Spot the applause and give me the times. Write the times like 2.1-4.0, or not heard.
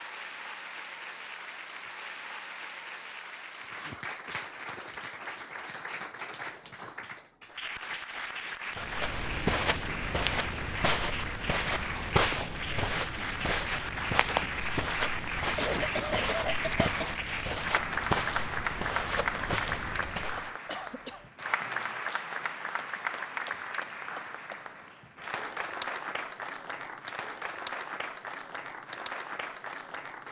0.0-30.2.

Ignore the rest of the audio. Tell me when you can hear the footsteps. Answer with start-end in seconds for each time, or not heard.
8.8-20.6.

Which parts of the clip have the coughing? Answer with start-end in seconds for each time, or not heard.
3.6-5.0, 15.6-17.2, 20.6-21.3.